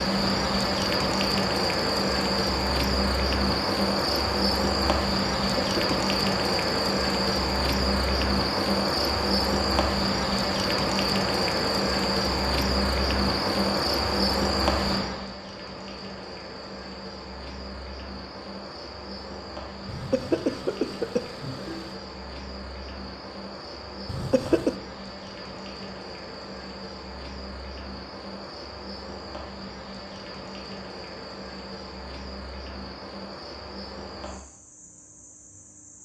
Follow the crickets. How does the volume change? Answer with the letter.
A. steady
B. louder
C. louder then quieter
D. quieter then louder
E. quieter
E.